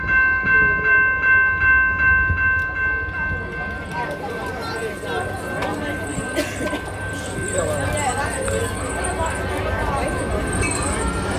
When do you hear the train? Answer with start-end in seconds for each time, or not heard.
0.0-11.3.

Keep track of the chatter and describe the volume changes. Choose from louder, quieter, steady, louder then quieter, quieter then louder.
louder.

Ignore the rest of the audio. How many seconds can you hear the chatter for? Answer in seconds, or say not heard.
11 s.